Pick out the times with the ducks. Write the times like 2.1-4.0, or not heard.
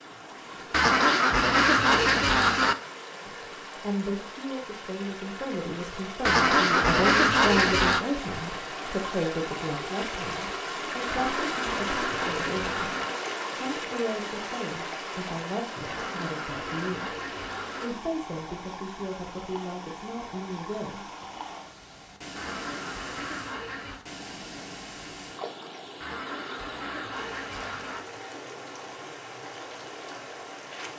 0.7-2.8, 6.2-8.1, 11.1-13.1, 15.8-17.9, 22.4-24.0, 26.0-28.0.